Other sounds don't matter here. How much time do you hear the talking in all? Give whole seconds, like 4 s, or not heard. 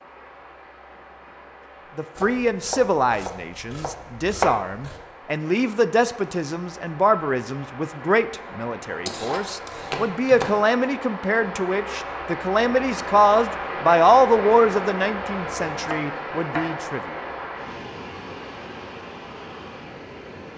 15 s.